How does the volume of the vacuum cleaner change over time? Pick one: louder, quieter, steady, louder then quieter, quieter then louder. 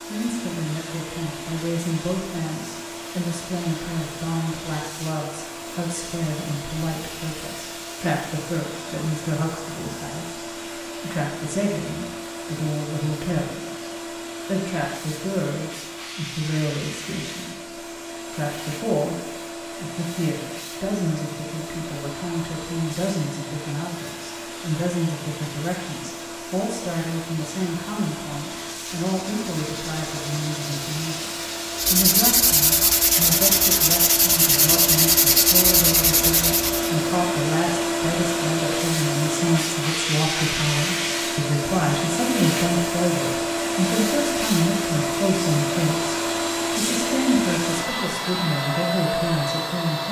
louder.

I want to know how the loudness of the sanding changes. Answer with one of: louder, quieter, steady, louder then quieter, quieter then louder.
louder.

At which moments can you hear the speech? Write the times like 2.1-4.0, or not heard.
0.1-50.0.